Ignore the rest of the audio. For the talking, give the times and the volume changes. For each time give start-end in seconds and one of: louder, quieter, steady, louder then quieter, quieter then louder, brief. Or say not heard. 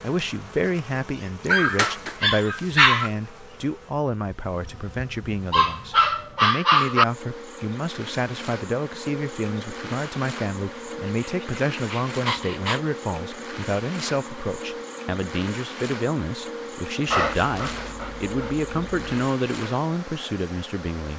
0.0-21.1 steady.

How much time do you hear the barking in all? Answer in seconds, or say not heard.
7 s.